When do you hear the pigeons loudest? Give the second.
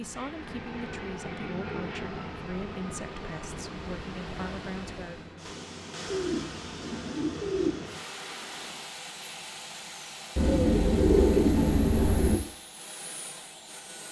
11 s.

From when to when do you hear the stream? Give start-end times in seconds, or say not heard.
0.0-8.9.